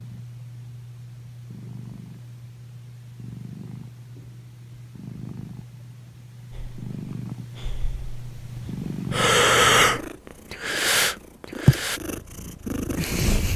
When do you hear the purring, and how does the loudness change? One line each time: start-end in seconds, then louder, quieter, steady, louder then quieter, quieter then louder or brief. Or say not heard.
0.0-13.5 louder.